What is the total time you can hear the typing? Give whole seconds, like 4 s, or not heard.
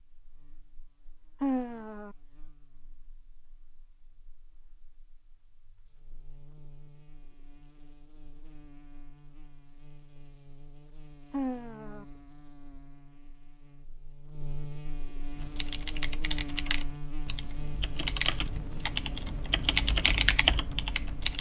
6 s.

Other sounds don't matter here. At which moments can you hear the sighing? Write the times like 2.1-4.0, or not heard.
1.4-2.1, 11.3-12.1.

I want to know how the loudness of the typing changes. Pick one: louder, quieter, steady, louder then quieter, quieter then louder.
quieter then louder.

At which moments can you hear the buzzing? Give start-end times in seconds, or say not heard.
0.0-21.3.